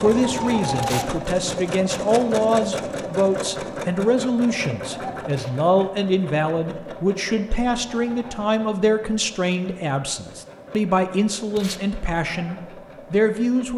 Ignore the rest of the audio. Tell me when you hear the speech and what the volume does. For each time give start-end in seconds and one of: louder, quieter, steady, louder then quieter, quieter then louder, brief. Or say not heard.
0.0-13.7 steady.